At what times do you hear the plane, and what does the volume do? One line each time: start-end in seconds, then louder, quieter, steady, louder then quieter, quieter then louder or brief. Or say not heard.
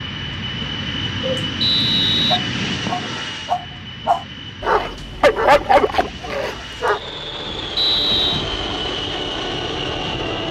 0.0-10.4 quieter then louder.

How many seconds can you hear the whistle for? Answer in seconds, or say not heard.
2 s.